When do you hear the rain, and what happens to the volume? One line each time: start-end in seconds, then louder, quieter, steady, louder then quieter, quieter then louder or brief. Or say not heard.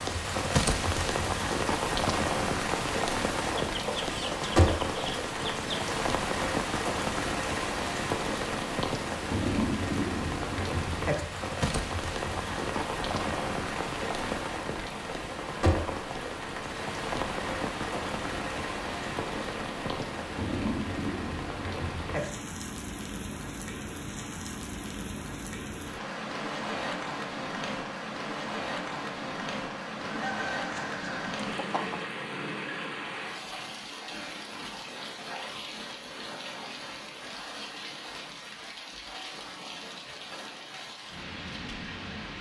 0.0-42.3 quieter.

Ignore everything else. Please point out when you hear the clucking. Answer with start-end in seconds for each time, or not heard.
3.6-5.9, 30.0-32.0.